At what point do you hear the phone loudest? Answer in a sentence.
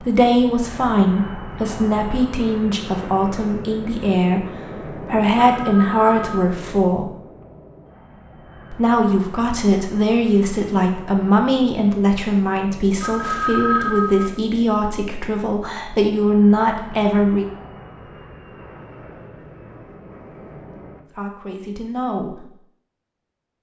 The volume of the phone peaks at 14 seconds.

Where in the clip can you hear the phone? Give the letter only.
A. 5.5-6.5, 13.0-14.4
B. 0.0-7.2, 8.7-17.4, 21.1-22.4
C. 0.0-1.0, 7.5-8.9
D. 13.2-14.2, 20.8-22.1
A.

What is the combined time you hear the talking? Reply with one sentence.
You can hear the talking for 17 seconds altogether.